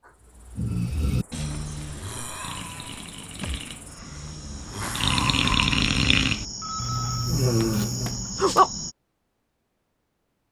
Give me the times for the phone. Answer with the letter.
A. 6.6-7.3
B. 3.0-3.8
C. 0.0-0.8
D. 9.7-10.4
A.